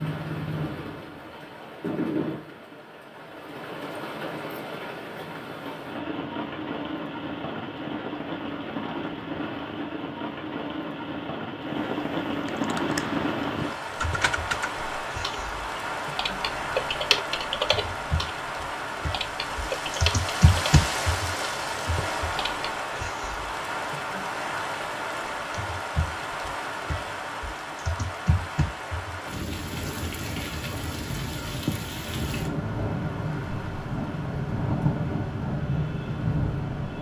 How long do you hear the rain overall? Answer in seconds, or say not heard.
37 s.